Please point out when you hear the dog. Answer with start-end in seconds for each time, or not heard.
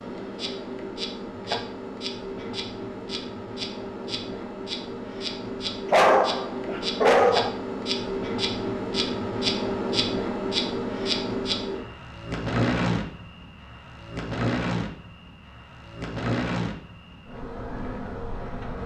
5.9-7.5.